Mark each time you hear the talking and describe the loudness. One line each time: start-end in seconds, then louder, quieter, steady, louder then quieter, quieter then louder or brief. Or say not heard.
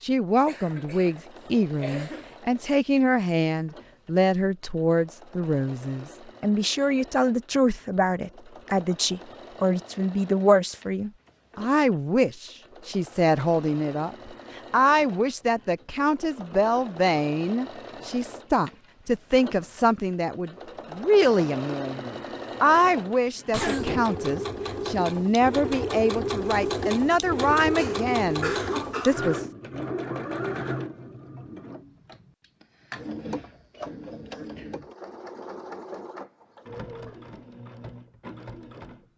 0.0-29.4 steady.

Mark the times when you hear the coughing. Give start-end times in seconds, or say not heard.
0.5-1.1, 1.8-2.4, 23.5-24.0, 27.7-29.2.